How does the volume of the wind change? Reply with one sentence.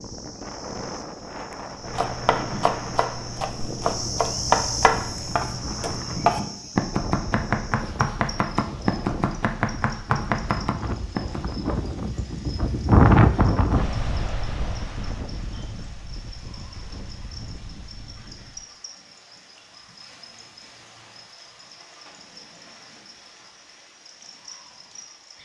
The loudness of the wind goes up, then down.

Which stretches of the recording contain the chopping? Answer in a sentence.
The chopping can be heard from 1.7 to 11.6 s.